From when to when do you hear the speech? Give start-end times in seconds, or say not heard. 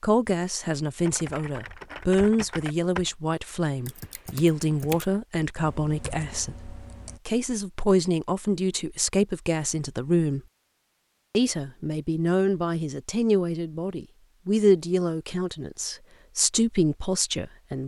0.0-10.4, 11.3-17.8.